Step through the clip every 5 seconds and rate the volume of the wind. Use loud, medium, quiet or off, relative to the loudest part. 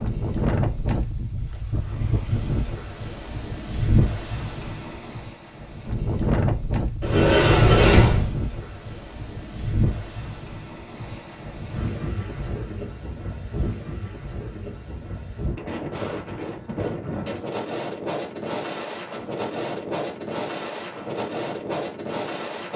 loud, loud, medium, loud, loud.